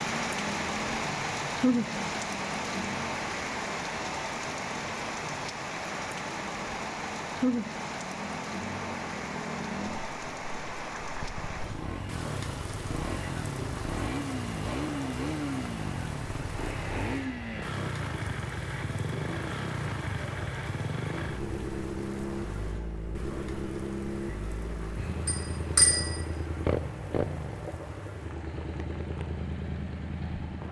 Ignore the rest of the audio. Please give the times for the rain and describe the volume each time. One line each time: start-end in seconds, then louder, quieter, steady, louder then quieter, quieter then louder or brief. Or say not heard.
0.0-30.6 quieter.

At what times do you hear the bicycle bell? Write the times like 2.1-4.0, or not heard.
25.2-26.2.